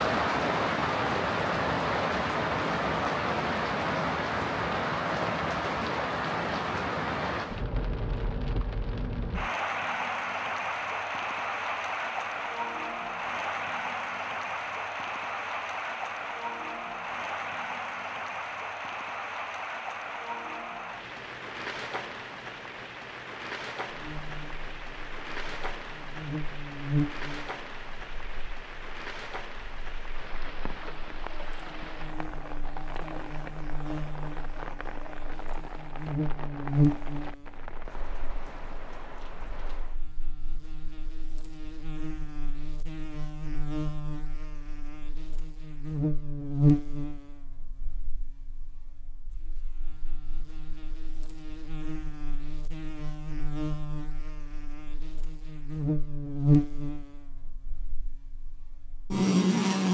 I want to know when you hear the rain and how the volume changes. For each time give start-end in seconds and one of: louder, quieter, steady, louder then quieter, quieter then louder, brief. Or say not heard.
0.0-40.0 quieter.